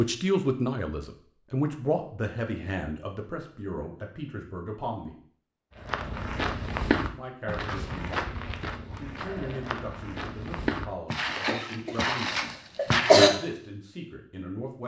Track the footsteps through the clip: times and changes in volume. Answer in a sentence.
You can hear the footsteps from 5.8 to 13.3 s, getting quieter then louder.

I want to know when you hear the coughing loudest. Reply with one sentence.
The volume of the coughing peaks at 13 seconds.